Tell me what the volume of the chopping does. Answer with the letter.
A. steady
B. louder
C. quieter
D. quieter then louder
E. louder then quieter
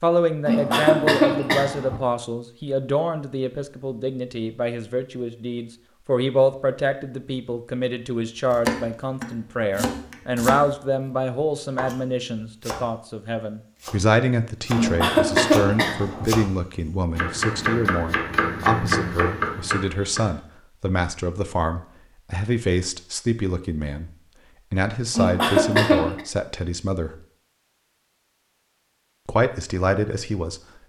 D.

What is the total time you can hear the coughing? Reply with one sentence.
You can hear the coughing for 4 seconds altogether.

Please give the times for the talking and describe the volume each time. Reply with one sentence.
You can hear the talking from 0.0 to 24.1 s, at a steady volume; briefly from 24.7 to 27.2 s; and briefly from 29.2 to 30.8 s.